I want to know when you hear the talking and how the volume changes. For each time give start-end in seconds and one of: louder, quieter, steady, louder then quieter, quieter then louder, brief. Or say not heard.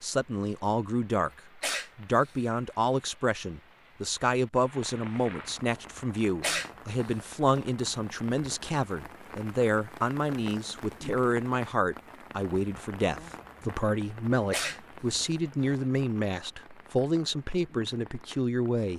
0.0-18.9 steady.